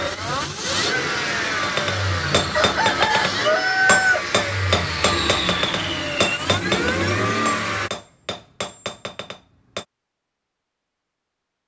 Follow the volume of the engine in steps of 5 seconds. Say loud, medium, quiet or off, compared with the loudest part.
loud, loud, off.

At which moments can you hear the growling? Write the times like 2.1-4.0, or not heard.
not heard.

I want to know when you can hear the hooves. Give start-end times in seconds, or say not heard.
not heard.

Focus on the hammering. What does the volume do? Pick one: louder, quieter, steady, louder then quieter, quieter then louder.
quieter.